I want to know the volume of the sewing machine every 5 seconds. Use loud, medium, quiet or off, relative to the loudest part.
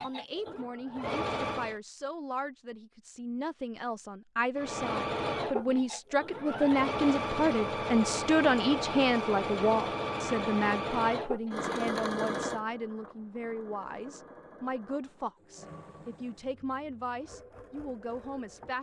loud, loud, loud, quiet.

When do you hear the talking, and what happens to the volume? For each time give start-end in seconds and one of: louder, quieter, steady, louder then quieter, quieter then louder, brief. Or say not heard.
0.0-18.7 louder then quieter.